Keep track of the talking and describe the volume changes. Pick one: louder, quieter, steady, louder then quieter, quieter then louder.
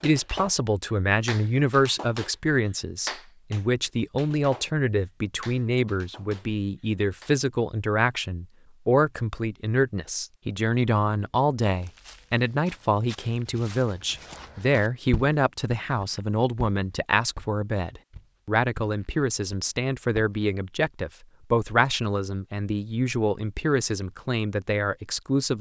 steady.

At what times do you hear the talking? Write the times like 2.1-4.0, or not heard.
0.0-25.5.